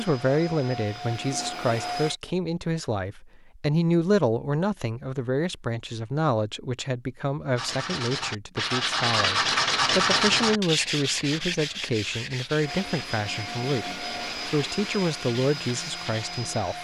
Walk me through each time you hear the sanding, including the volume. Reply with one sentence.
The sanding can be heard from 7.5 to 16.4 s, getting quieter.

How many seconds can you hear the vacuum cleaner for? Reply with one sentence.
The vacuum cleaner can be heard for 6 seconds in total.